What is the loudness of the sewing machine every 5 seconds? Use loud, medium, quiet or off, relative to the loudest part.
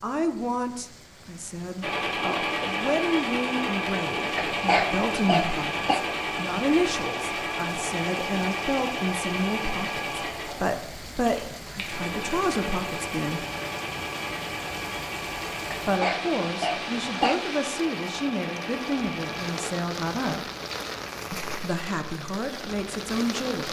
loud, loud, medium, medium, off.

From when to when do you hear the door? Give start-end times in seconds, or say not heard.
not heard.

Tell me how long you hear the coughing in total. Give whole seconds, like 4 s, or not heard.
3 s.